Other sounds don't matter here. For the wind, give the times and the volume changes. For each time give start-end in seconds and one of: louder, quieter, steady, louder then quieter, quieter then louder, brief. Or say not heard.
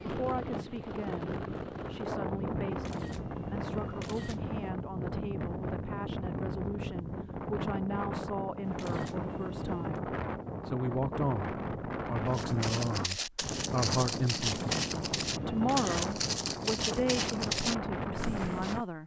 0.0-18.9 steady.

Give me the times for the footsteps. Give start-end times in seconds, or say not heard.
12.3-18.9.